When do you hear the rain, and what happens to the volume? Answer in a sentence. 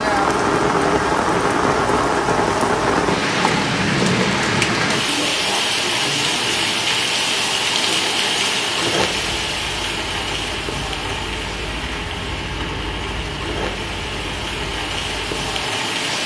You can hear the rain from 0.0 to 16.2 s, getting quieter.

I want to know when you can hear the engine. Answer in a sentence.
The engine can be heard from 9.2 to 16.2 s.